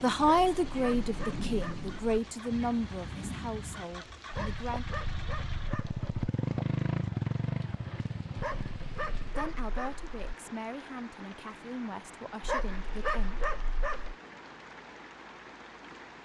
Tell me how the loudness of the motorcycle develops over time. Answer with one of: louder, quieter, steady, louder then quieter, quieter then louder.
louder then quieter.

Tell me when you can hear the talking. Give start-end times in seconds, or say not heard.
0.0-4.8, 9.3-13.5.